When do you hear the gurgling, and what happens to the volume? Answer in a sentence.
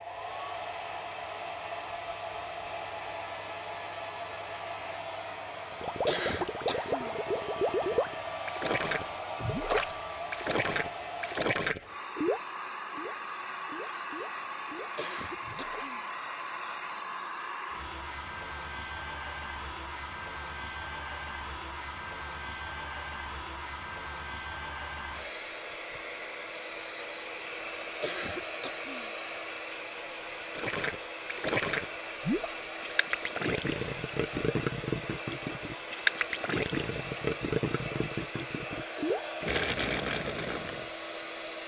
You can hear the gurgling from 5.7 to 15.9 s, getting quieter; and from 30.6 to 40.9 s, at a steady volume.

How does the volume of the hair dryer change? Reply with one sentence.
The volume of the hair dryer stays about the same.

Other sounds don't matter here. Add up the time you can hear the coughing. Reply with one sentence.
You can hear the coughing for 3 seconds altogether.